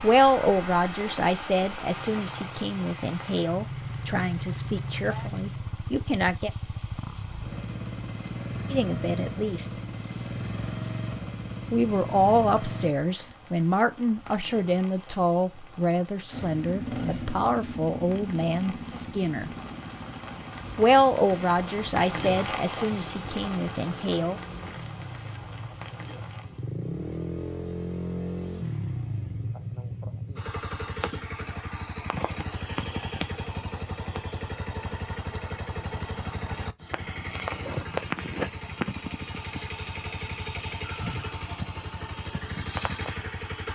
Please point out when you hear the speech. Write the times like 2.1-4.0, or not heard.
0.0-6.5, 8.7-9.7, 11.7-19.5, 20.8-24.4.